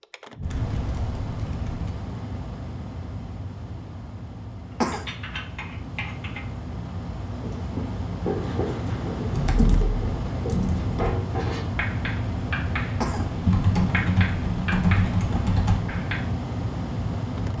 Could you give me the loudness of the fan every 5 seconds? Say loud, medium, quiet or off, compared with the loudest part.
medium, loud, loud, loud.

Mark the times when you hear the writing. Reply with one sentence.
The writing can be heard from 7.4 to 16.2 s.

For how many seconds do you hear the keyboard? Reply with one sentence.
You can hear the keyboard for 7 seconds altogether.